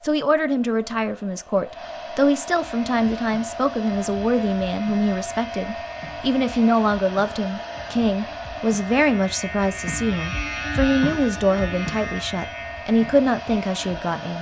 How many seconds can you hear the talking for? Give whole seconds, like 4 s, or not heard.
14 s.